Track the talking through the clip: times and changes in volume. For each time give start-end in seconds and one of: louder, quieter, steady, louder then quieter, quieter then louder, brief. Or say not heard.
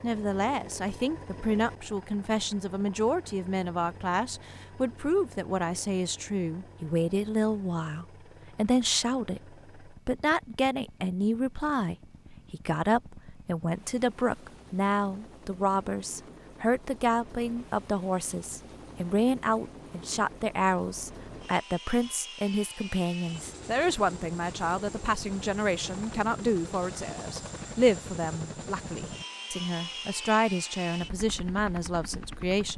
0.0-32.7 steady.